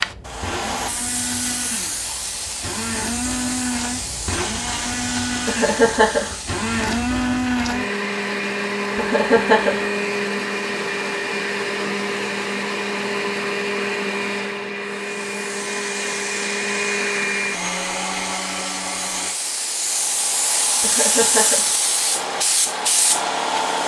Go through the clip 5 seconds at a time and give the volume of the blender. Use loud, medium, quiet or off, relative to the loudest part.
medium, loud, loud, loud, off.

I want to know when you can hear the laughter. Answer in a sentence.
You can hear the laughter from 5.5 to 6.3 s, from 8.9 to 9.8 s and from 20.8 to 21.8 s.